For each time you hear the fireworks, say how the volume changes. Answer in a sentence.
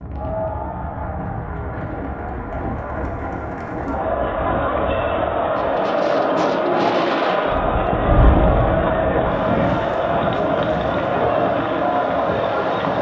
You can't hear the fireworks here.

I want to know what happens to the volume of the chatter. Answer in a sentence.
The loudness of the chatter goes up.